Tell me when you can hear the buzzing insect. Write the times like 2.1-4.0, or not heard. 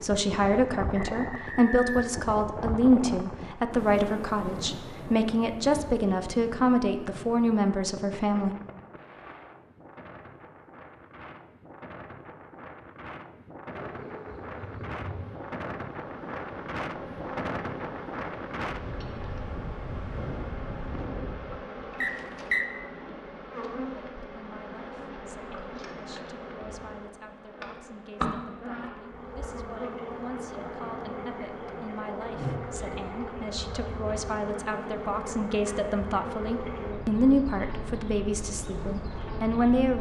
13.7-39.9.